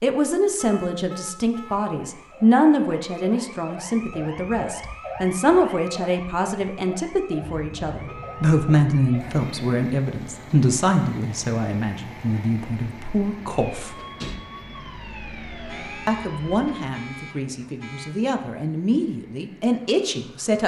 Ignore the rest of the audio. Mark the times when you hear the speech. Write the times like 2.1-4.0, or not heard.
0.0-14.0, 16.1-20.6.